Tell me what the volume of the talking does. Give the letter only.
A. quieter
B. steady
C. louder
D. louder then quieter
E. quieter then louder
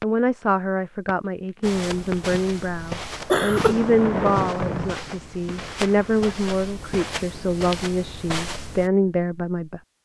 B.